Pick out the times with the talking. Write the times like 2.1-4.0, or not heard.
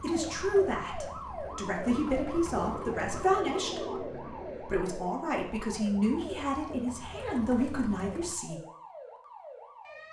0.0-8.6.